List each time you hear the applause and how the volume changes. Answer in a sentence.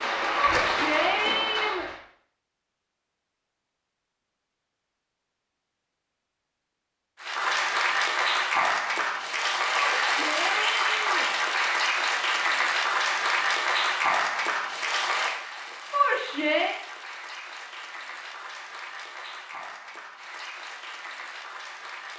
You can hear the applause briefly from 0.0 to 2.0 s; and from 7.2 to 22.1 s, getting quieter.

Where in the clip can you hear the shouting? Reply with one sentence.
The shouting can be heard from 0.3 to 1.9 s, from 9.8 to 11.3 s and from 15.9 to 16.8 s.